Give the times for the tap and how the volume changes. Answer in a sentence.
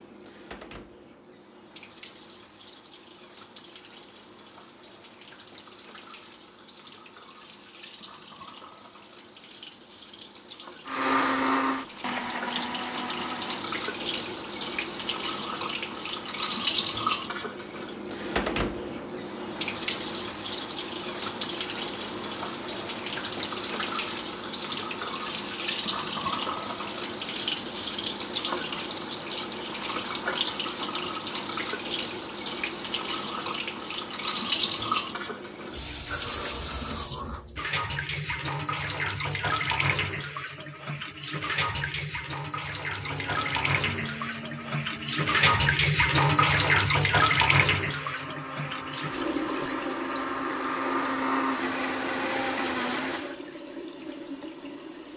You can hear the tap from 0.0 to 55.1 s, getting louder.